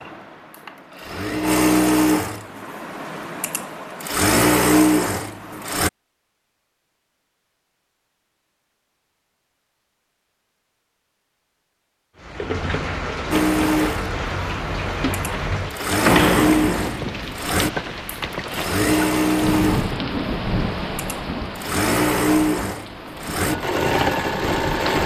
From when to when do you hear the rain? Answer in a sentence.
You can hear the rain from 12.2 to 25.0 s.